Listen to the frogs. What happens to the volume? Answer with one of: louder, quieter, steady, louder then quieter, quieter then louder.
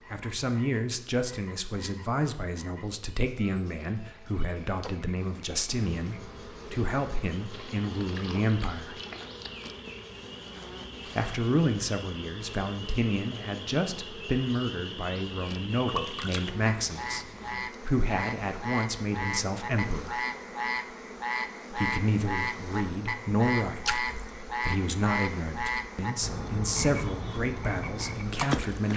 louder.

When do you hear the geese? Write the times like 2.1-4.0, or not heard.
not heard.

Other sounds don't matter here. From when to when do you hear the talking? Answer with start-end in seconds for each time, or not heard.
0.1-8.9, 11.2-20.2, 21.7-28.9.